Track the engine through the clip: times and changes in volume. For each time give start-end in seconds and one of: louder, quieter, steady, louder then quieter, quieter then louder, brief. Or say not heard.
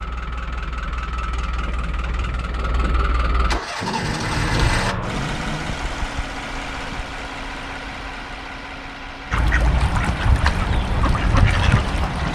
0.0-12.3 louder then quieter.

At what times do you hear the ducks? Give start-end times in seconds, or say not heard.
9.3-12.3.